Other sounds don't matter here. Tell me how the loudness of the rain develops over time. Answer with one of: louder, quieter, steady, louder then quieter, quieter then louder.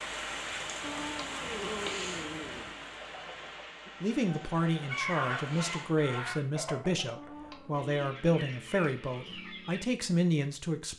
quieter.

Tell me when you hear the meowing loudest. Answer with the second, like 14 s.
2 s.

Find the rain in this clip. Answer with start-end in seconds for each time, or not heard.
0.0-6.0.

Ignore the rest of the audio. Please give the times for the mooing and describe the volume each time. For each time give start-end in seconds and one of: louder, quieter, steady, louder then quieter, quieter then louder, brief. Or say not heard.
not heard.